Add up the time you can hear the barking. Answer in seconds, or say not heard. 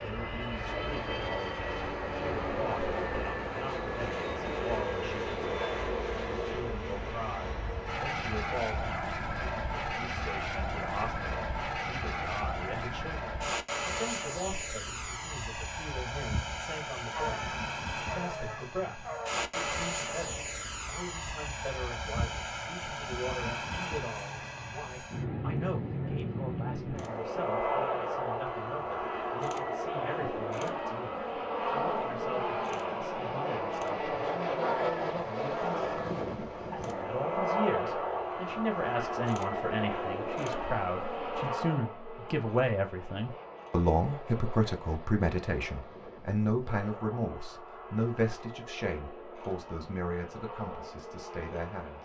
4 s.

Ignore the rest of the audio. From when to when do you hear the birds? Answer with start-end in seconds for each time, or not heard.
not heard.